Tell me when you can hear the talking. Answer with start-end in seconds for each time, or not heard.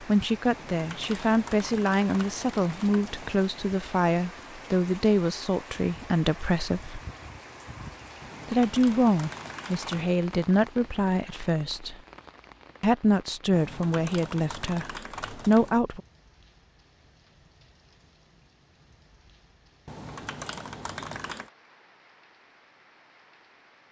0.0-7.0, 8.4-11.9, 12.8-16.0.